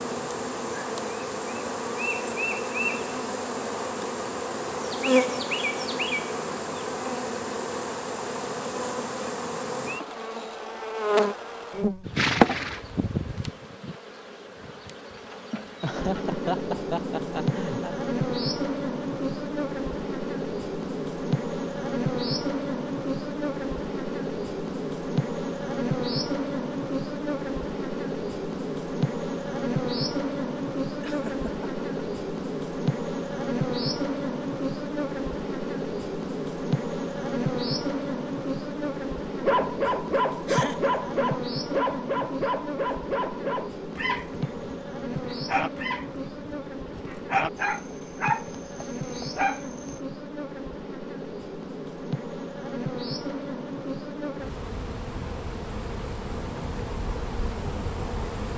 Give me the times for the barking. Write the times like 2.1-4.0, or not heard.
39.4-50.0.